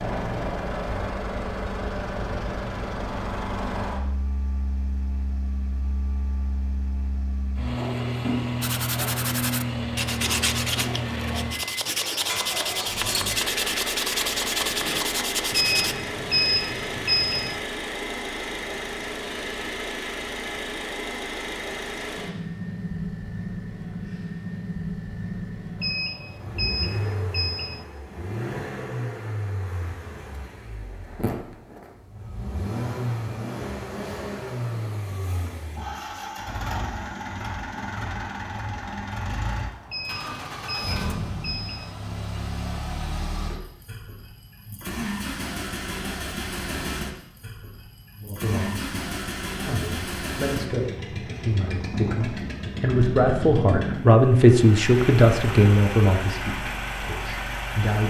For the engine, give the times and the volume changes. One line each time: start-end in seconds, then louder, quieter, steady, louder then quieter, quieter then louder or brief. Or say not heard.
0.0-58.0 steady.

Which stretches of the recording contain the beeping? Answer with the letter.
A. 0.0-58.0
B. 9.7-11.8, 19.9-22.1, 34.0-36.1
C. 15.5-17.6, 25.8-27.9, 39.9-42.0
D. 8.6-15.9
C.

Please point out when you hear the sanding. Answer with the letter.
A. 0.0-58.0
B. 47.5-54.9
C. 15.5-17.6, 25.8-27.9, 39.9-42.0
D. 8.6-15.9
D.